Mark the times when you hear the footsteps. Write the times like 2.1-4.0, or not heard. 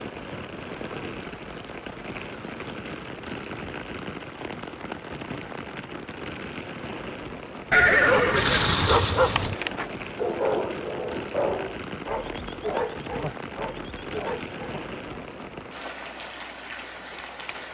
not heard.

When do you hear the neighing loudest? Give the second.
8 s.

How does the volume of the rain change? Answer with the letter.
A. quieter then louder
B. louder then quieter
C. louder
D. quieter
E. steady
E.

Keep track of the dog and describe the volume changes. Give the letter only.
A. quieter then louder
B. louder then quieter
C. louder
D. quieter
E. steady
D.